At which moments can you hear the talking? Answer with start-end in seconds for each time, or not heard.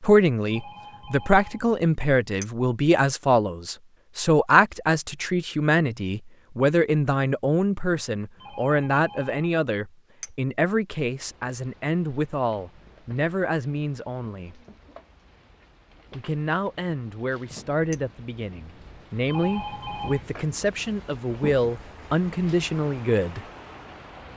0.0-14.6, 16.1-23.4.